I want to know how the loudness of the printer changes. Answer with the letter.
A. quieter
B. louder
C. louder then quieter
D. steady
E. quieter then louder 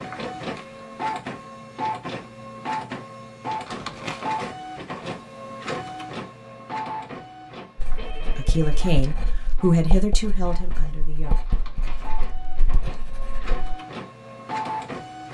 E.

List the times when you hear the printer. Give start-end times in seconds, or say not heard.
0.0-15.2.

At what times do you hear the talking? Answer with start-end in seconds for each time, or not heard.
8.2-11.4.